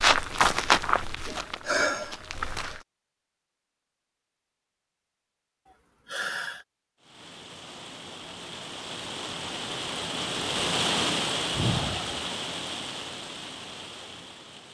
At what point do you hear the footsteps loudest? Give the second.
1 s.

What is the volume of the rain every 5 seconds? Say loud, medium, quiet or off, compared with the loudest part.
off, medium, loud.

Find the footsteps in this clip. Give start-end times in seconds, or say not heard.
0.0-2.8.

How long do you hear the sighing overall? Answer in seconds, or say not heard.
2 s.